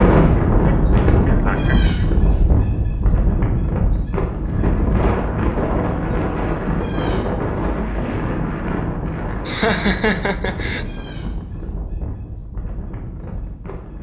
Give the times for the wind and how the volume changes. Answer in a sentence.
The wind can be heard from 0.0 to 13.9 s, getting quieter.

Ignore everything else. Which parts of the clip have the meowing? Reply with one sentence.
You can't hear the meowing here.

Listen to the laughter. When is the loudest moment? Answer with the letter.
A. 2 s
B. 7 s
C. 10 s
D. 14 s
C.